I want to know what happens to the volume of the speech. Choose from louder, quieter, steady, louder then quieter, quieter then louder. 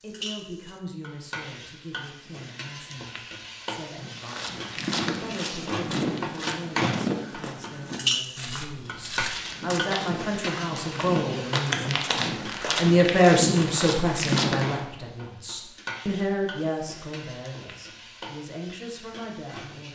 louder then quieter.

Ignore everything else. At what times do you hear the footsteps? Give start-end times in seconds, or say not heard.
4.0-14.8.